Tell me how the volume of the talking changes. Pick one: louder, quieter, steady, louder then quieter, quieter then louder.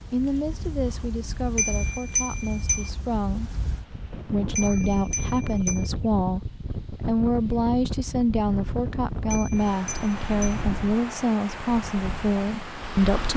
louder.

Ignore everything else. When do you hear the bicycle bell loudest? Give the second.
2 s.